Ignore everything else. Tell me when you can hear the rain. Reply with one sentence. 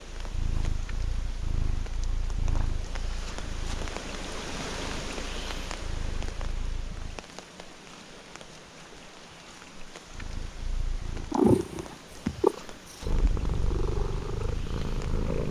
The rain can be heard from 0.0 to 15.4 s.